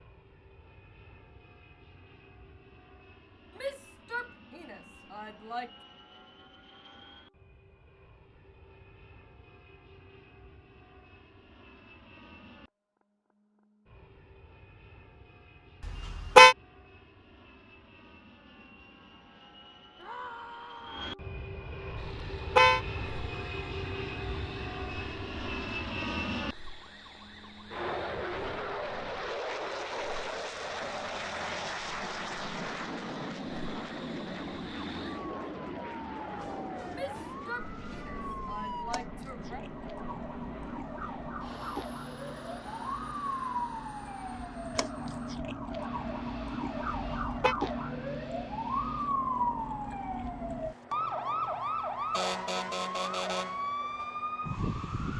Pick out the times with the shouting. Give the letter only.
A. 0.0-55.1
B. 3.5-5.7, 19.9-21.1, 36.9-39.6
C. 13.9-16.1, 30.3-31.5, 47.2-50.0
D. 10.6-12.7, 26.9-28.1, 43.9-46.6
B.